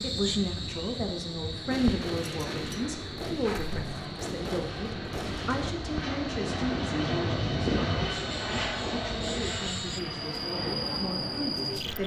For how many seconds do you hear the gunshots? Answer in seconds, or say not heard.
4 s.